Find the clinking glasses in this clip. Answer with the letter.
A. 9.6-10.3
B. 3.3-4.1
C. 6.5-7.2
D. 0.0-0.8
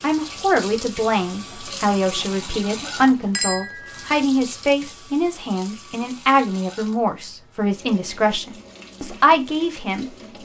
B.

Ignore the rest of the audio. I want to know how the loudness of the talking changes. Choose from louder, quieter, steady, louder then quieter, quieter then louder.
steady.